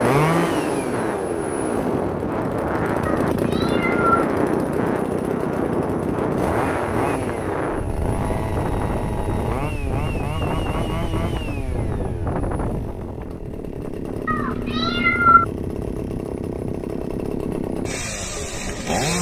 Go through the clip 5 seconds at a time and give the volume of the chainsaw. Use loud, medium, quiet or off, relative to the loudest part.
loud, loud, medium, loud.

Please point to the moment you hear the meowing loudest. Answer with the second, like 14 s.
15 s.